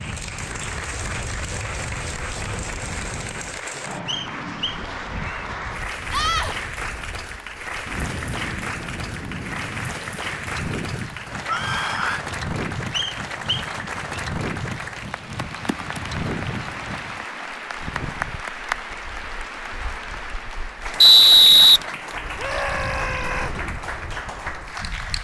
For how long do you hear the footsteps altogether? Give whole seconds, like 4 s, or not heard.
not heard.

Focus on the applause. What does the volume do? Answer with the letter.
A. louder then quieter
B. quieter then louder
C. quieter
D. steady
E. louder
D.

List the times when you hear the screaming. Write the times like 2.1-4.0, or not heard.
6.1-6.5, 11.4-12.2, 22.4-23.6.